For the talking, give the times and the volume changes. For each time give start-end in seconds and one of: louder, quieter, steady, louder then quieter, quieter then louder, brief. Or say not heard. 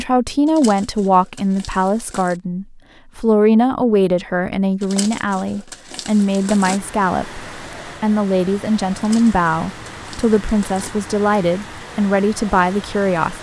0.0-13.3 steady.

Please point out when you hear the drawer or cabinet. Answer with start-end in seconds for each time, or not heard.
not heard.